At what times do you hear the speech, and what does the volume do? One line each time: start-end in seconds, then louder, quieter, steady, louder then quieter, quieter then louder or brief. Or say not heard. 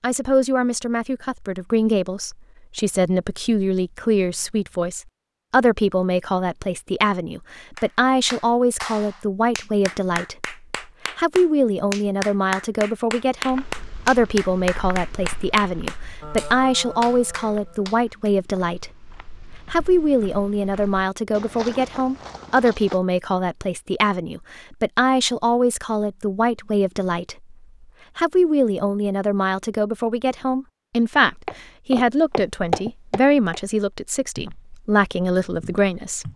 0.0-10.6 steady
11.2-19.1 steady
19.7-27.6 steady
28.1-36.3 steady.